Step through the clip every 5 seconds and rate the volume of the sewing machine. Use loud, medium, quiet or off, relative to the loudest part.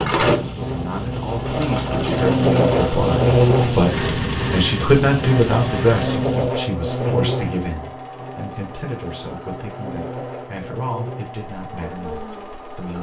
loud, medium, quiet.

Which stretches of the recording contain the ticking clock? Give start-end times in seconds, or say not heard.
not heard.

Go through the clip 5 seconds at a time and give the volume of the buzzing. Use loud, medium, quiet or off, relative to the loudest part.
loud, medium, quiet.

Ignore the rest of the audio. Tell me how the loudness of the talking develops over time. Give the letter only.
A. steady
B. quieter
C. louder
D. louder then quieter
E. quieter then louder
D.